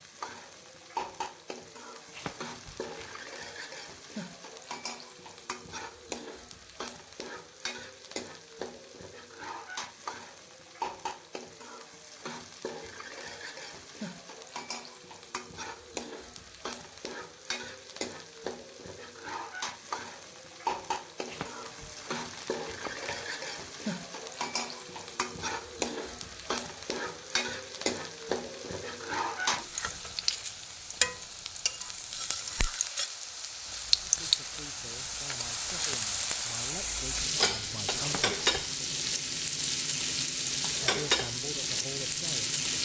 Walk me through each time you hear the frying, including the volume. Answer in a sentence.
The frying can be heard from 0.0 to 42.8 s, getting louder.